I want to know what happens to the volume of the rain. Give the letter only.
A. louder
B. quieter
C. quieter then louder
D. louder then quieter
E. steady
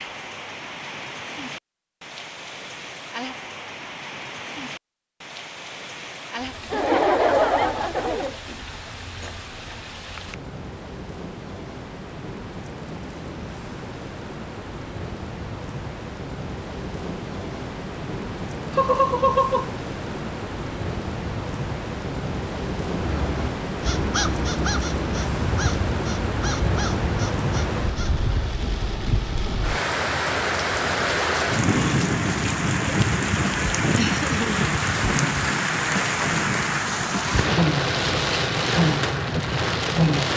A.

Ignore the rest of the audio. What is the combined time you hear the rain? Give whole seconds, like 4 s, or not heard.
40 s.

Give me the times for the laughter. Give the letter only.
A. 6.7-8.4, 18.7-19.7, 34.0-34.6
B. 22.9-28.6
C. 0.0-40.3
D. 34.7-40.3
A.